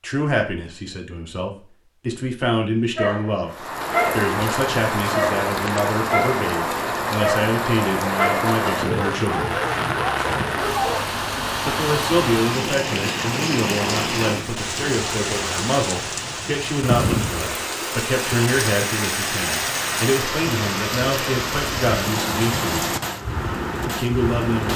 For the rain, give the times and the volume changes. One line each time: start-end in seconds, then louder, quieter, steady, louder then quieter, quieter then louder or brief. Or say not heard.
3.5-24.7 steady.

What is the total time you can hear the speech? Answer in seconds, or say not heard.
22 s.